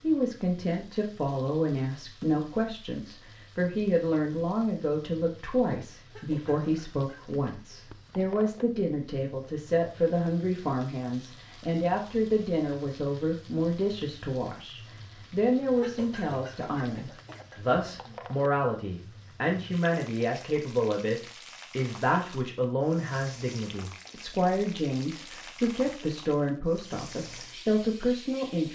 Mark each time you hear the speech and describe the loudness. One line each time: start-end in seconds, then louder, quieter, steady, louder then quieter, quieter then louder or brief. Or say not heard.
0.0-28.6 steady.